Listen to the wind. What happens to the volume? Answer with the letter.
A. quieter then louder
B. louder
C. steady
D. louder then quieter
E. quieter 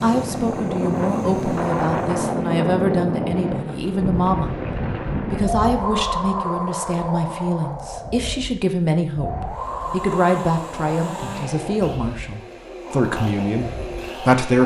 E.